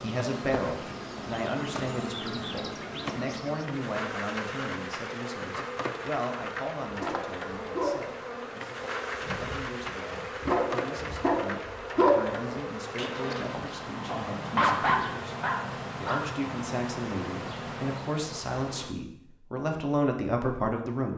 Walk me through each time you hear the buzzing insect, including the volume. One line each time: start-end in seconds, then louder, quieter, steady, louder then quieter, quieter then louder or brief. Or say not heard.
0.0-18.9 steady.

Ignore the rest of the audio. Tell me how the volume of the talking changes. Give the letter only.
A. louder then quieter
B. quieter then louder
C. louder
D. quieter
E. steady
B.